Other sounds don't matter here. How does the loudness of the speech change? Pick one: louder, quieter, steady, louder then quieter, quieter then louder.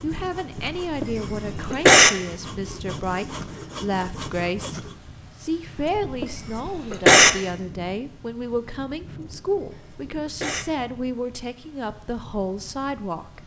steady.